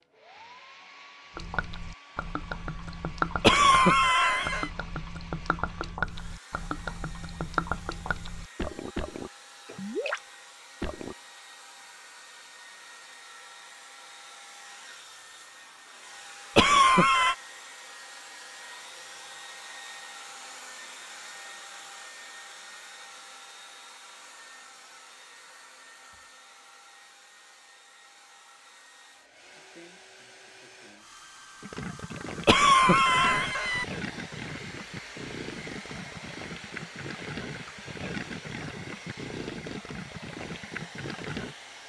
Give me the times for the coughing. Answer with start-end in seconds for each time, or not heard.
3.4-4.7, 16.6-17.4, 32.5-33.9.